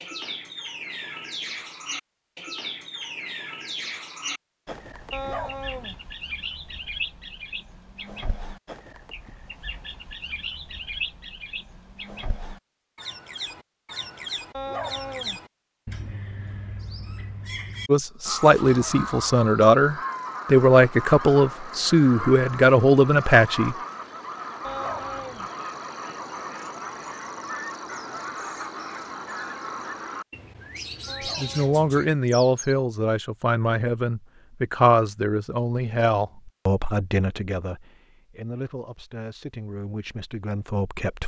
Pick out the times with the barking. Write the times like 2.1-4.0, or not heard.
5.1-6.0, 14.5-15.4, 24.6-25.5, 31.1-31.8.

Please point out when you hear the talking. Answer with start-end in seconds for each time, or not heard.
17.9-23.8, 31.2-41.2.